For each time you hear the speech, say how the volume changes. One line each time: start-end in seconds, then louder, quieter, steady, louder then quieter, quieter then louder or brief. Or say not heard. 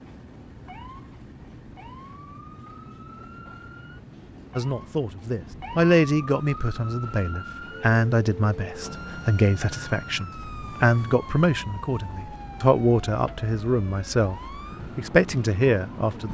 4.5-16.3 steady.